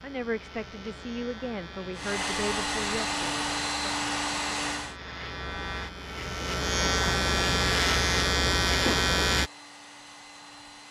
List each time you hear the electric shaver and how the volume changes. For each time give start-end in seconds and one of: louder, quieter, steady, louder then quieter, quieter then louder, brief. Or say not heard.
0.0-9.5 louder.